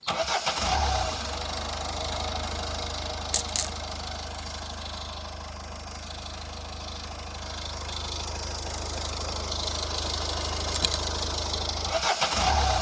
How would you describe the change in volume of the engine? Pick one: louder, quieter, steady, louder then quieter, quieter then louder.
quieter then louder.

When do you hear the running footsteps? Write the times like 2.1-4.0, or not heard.
not heard.